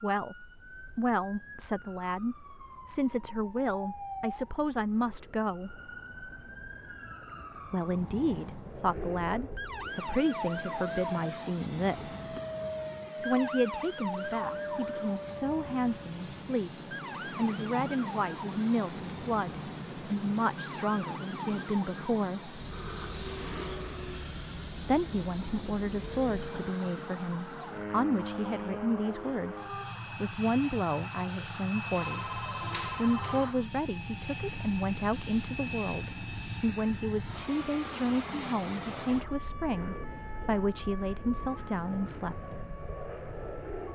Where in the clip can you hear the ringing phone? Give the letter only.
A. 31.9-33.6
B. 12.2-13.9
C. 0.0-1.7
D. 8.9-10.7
A.